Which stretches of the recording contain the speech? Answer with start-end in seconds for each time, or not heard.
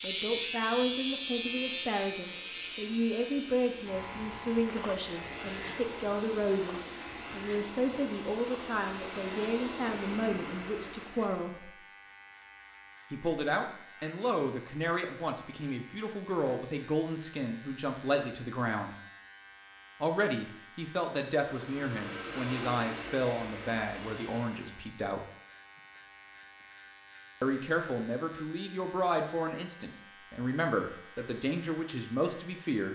0.0-11.7, 13.1-18.9, 20.0-25.2, 27.4-32.9.